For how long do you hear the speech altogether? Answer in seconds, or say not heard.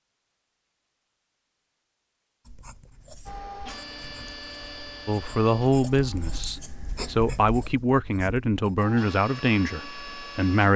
6 s.